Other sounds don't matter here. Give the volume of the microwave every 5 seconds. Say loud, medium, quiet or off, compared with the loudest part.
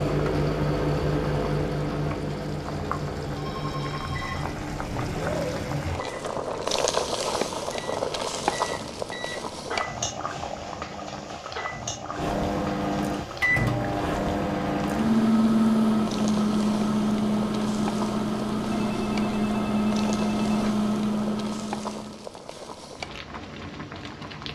medium, quiet, medium, loud, loud.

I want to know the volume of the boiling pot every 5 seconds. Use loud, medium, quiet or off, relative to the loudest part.
medium, loud, medium, medium, medium.